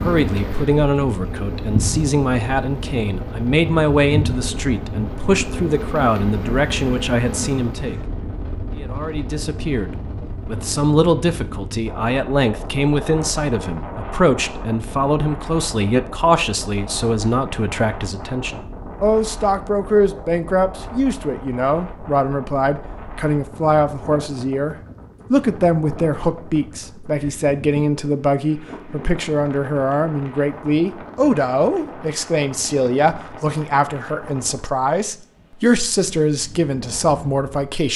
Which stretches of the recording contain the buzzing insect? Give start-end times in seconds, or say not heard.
0.0-8.0.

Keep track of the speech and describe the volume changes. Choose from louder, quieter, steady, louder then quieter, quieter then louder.
steady.